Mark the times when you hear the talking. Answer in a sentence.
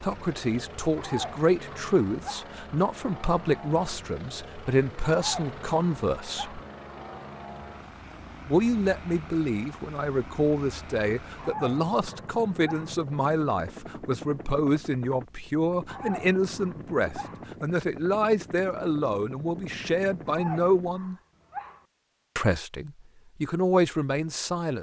You can hear the talking from 0.0 to 6.6 s, from 8.4 to 21.1 s and from 22.4 to 24.7 s.